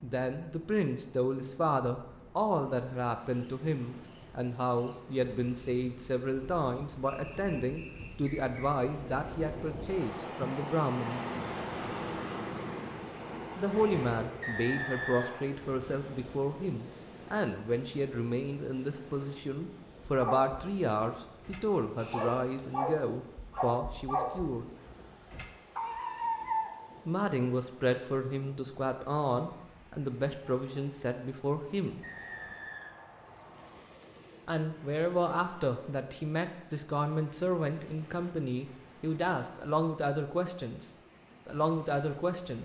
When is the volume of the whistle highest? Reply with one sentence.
The volume of the whistle peaks at 15 seconds.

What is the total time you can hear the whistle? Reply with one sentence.
The whistle can be heard for 4 seconds in total.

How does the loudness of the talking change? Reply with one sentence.
The loudness of the talking stays about the same.